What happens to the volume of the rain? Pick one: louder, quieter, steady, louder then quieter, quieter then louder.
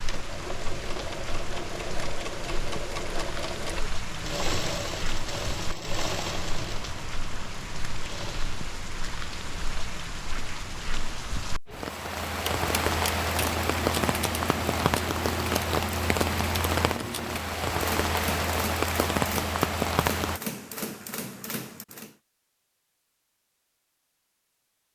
louder.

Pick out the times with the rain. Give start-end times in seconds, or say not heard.
0.0-20.4.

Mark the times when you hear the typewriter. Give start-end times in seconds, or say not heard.
12.4-22.1.